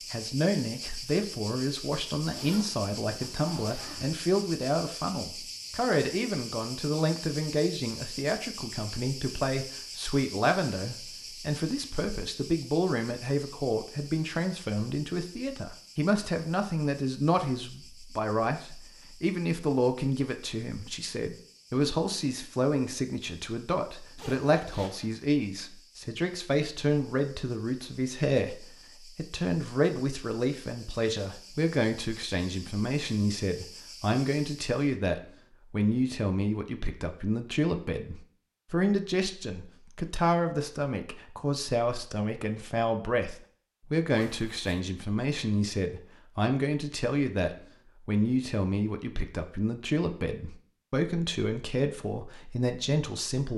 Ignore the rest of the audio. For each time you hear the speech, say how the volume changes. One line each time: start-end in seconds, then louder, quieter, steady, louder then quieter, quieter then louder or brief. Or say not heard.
0.1-53.5 steady.